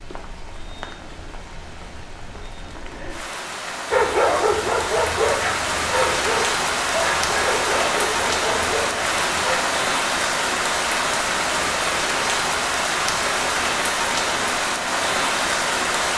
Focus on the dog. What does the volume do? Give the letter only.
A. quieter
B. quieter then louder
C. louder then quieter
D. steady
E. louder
A.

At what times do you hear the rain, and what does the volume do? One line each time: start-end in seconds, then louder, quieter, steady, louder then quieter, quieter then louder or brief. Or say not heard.
0.0-16.1 louder.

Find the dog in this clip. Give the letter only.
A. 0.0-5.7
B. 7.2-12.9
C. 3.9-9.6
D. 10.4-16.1
C.